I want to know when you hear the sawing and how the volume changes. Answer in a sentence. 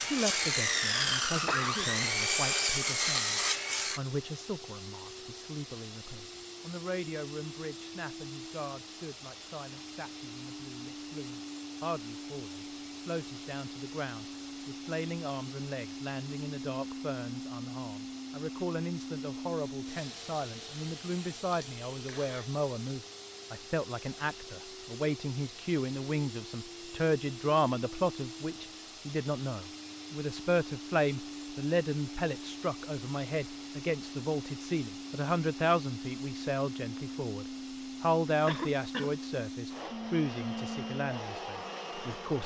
The sawing can be heard from 0.0 to 4.0 s, at a steady volume.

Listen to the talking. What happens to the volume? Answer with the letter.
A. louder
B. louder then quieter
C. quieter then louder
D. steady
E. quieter
A.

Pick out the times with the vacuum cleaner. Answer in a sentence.
The vacuum cleaner can be heard from 0.0 to 42.4 s.